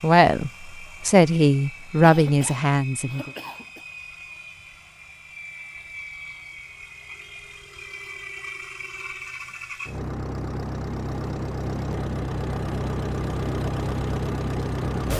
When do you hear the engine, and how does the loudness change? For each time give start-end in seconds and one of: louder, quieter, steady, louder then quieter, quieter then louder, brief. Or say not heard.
0.0-15.1 louder.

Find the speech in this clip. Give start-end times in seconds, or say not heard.
0.0-3.3.